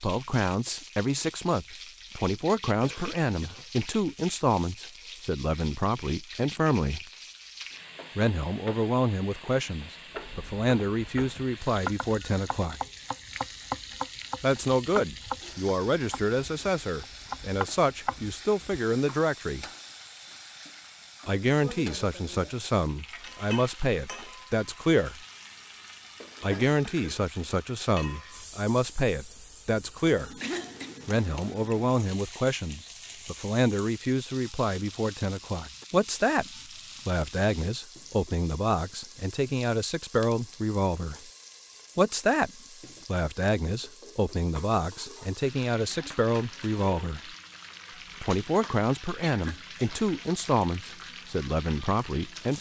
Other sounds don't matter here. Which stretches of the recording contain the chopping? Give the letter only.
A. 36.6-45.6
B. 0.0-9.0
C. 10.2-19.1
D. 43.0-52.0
C.